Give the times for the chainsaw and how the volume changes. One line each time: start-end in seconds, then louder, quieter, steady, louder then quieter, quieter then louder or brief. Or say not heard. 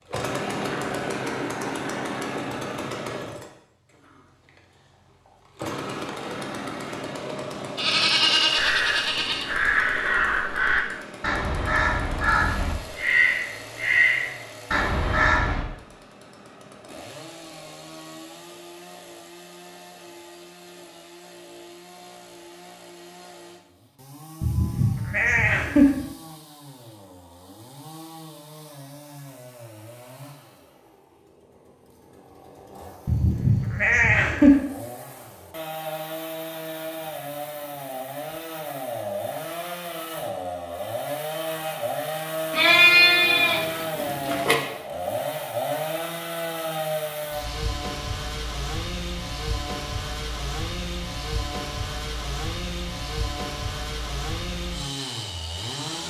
0.1-56.0 quieter then louder.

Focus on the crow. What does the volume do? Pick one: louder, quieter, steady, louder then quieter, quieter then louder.
steady.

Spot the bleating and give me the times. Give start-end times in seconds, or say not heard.
7.8-9.4, 24.4-26.1, 33.0-34.5, 42.5-44.5.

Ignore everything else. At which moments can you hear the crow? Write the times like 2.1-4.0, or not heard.
8.5-15.7.